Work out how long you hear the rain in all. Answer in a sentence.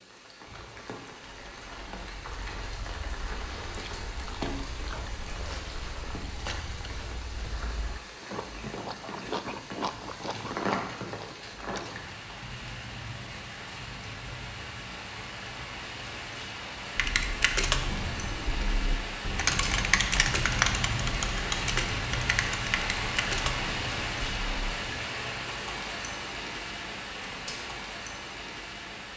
You can hear the rain for 29 seconds altogether.